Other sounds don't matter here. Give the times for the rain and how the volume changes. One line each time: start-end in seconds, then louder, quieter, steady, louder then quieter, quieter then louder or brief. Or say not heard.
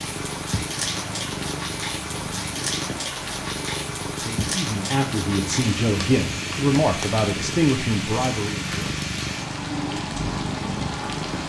0.0-11.4 steady.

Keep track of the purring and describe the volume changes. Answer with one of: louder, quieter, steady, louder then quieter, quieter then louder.
steady.